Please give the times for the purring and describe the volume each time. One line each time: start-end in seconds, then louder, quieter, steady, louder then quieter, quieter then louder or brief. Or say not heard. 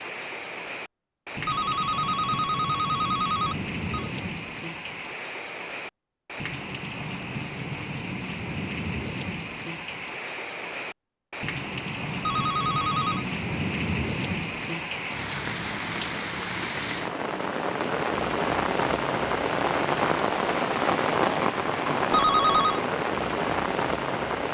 not heard.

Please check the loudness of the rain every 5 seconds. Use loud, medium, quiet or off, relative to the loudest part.
medium, medium, medium, loud, loud.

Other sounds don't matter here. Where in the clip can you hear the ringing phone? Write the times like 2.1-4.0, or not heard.
1.4-4.1, 12.2-13.2, 22.1-22.8.